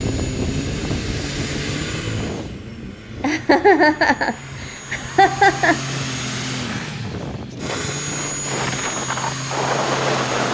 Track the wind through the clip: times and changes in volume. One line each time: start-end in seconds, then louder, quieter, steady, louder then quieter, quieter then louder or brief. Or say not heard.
0.0-10.5 quieter then louder.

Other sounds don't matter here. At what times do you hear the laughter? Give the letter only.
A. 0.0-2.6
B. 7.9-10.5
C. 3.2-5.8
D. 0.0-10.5
C.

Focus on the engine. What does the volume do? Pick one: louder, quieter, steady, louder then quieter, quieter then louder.
quieter then louder.